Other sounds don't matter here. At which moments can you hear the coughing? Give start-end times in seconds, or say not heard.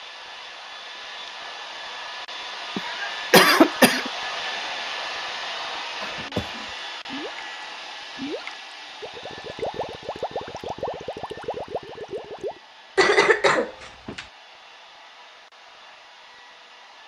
2.8-4.1, 6.0-6.7, 12.9-14.2.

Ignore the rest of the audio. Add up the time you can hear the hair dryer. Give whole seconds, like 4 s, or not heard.
17 s.